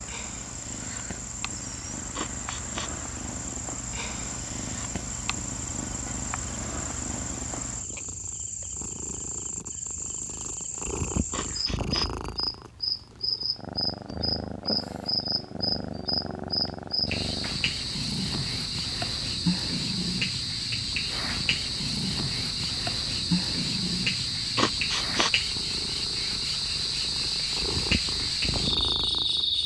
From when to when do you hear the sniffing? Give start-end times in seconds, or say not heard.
2.1-2.9, 11.3-12.1, 24.6-25.3.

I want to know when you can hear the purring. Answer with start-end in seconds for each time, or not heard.
0.0-29.6.